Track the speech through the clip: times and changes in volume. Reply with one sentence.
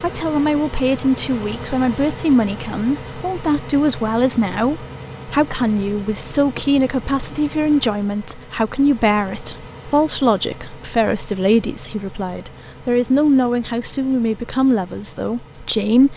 You can hear the speech from 0.0 to 16.1 s, at a steady volume.